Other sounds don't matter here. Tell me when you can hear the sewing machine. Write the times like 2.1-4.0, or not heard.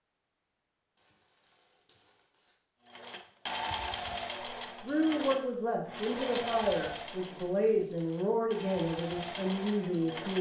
2.9-10.3.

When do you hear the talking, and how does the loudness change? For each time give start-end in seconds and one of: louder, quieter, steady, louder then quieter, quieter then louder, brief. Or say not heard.
4.8-10.3 steady.